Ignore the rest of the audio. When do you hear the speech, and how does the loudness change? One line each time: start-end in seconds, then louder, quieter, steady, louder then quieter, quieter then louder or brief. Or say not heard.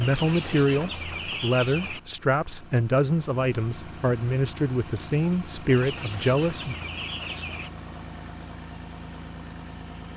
0.0-6.8 steady.